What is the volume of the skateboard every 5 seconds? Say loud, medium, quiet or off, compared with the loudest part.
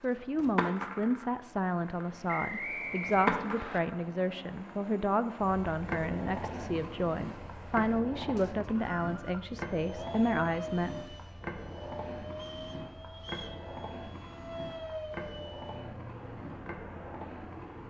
loud, medium, medium, medium.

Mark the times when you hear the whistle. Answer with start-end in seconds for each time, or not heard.
2.2-3.8, 8.3-9.4, 12.3-13.6.